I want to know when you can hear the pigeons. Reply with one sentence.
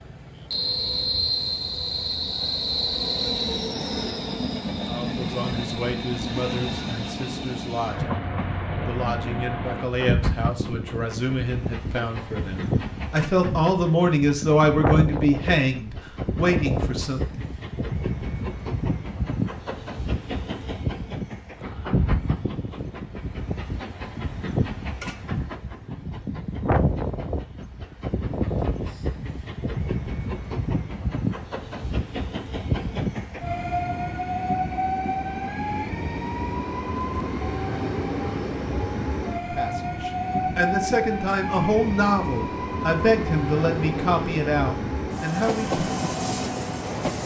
You can't hear the pigeons here.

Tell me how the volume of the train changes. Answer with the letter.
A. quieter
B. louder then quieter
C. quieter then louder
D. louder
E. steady
E.